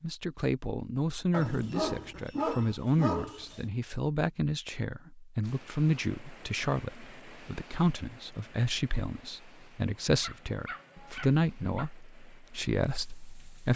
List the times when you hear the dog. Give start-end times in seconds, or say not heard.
1.3-3.7, 10.0-11.9.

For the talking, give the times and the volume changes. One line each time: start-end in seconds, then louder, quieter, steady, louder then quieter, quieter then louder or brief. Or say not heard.
0.0-13.7 steady.